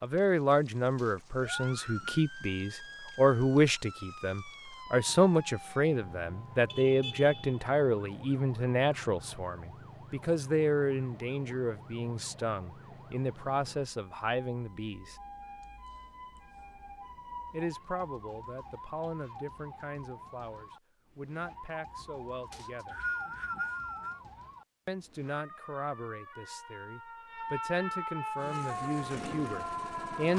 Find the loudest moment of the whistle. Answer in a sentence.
The loudest moment of the whistle is at 23 seconds.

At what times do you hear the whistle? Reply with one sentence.
You can hear the whistle from 0.9 to 2.2 s and from 22.5 to 24.2 s.